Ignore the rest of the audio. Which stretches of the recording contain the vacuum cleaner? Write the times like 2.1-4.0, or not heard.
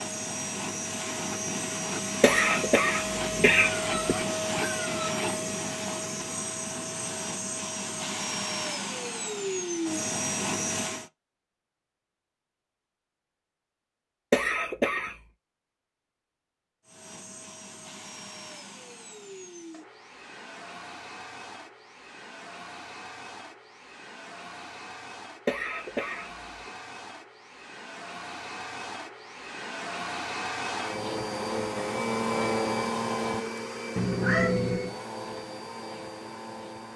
0.0-11.1, 16.9-36.9.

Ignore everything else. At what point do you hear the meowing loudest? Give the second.
34 s.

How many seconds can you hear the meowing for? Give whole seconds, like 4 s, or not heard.
3 s.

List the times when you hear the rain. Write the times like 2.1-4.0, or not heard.
not heard.